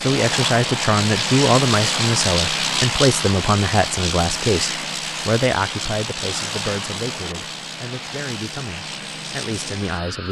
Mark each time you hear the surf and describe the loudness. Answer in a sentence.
You can't hear the surf here.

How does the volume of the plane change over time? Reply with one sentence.
The volume of the plane goes down.